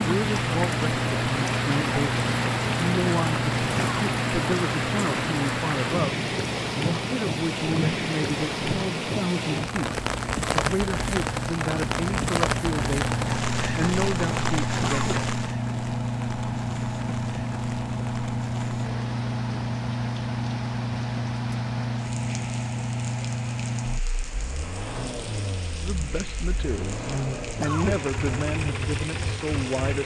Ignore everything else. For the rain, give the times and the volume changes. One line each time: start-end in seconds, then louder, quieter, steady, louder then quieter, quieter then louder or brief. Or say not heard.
0.0-30.0 quieter.